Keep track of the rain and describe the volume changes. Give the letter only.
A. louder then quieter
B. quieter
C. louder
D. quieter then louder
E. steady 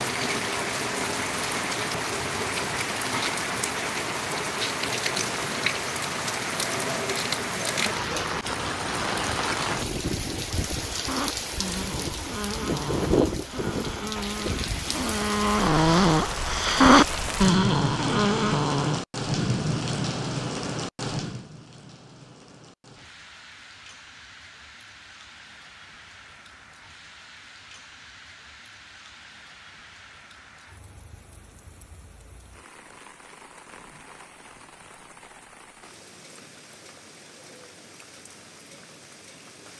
B.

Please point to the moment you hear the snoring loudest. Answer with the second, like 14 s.
17 s.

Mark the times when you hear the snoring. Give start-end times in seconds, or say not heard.
10.5-19.0.